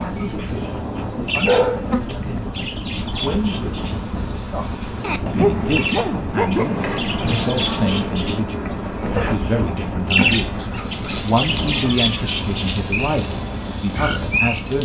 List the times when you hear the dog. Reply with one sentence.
You can hear the dog from 1.1 to 2.8 s, from 5.0 to 7.0 s and from 10.7 to 12.3 s.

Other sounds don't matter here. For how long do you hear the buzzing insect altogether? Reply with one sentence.
The buzzing insect can be heard for 15 seconds in total.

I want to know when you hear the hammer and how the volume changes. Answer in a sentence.
The hammer can't be heard in this clip.